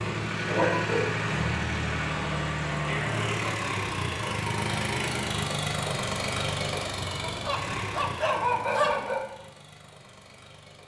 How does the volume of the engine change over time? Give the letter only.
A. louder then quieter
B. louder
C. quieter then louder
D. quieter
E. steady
D.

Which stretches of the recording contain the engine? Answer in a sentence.
The engine can be heard from 0.0 to 10.8 s.